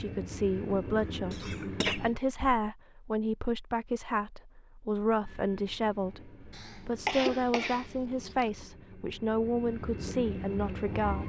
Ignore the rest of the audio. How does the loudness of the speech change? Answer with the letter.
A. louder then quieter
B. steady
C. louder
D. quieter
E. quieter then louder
B.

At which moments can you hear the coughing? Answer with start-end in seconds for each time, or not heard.
1.3-2.6, 6.5-8.4.